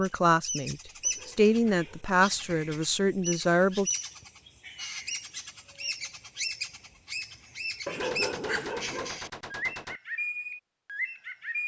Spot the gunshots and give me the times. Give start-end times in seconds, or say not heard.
8.0-10.0.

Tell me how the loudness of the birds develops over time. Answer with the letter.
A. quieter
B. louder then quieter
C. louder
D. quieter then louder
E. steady
E.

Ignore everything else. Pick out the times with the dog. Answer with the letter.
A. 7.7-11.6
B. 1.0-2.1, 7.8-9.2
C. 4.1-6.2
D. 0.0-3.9
B.